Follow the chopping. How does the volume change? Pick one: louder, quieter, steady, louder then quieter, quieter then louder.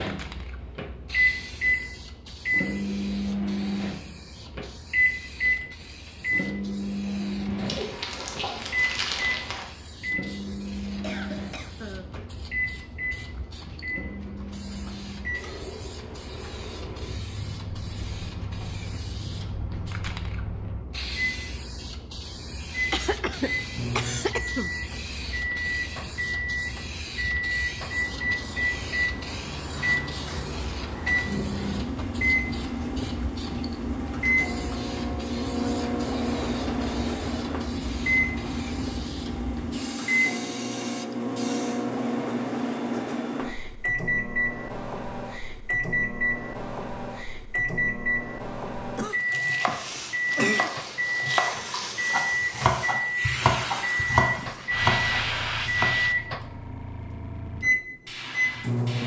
louder.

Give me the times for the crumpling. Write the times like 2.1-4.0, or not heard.
7.5-9.7, 50.5-52.0.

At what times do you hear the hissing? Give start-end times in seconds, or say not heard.
0.0-41.9, 49.6-59.0.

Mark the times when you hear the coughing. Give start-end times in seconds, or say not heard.
11.0-12.2, 22.9-24.7, 49.0-50.7.